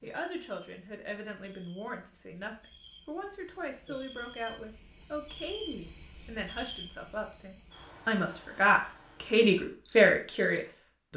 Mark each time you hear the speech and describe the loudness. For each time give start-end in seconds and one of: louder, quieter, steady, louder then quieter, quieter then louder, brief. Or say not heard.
0.0-11.1 louder.